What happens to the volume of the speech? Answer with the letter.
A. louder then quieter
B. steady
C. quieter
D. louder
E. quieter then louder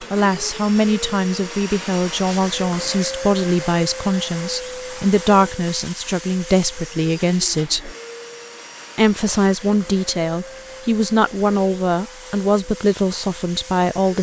B.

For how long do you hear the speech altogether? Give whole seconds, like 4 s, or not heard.
13 s.